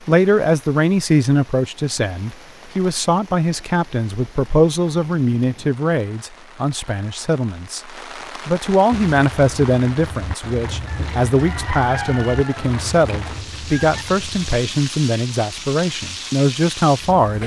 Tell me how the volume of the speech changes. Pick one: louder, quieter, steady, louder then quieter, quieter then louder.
steady.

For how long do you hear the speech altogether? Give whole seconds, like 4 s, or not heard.
17 s.